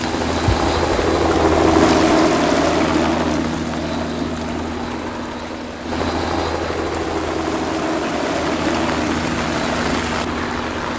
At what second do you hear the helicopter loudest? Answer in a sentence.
The volume of the helicopter peaks at 2 seconds.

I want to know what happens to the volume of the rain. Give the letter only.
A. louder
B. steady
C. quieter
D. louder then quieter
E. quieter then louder
E.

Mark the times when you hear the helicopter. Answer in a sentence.
The helicopter can be heard from 0.0 to 10.9 s.